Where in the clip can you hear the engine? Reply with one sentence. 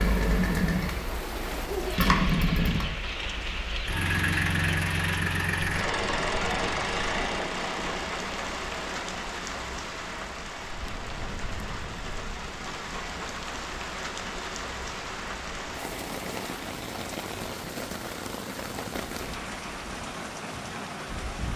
The engine can be heard from 0.0 to 16.8 s.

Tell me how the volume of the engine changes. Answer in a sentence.
The loudness of the engine goes down.